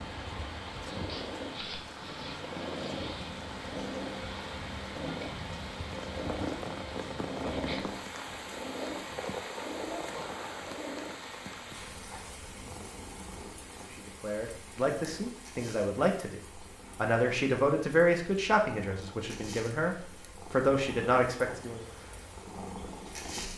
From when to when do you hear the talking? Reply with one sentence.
You can hear the talking from 13.9 to 21.9 s.